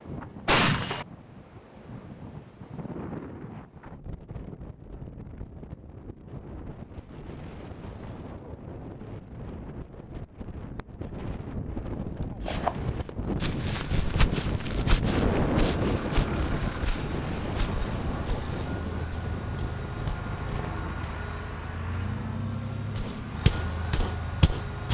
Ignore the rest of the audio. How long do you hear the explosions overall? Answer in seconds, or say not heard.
2 s.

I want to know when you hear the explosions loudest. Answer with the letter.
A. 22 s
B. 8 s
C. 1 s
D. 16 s
C.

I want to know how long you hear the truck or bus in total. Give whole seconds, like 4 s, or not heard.
11 s.